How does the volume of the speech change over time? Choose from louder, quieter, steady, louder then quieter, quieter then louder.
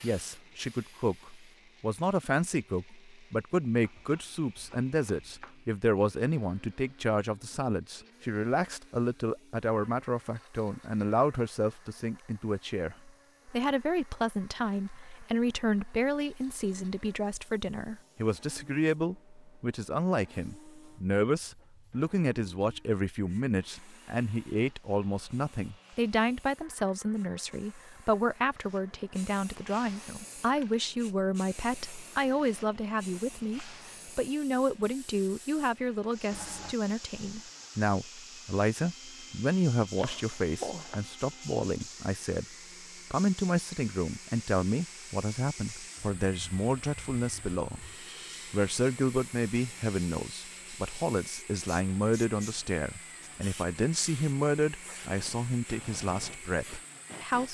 steady.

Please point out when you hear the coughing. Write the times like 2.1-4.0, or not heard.
36.3-36.8.